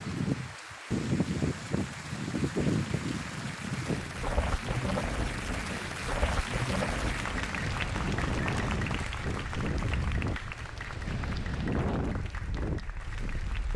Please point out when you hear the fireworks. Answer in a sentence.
You can't hear the fireworks here.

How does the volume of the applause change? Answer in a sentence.
The loudness of the applause goes up, then down.